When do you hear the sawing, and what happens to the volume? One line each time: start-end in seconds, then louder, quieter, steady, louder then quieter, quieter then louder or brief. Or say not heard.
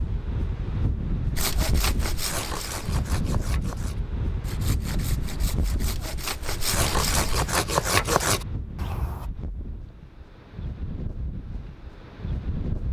1.4-9.3 quieter then louder.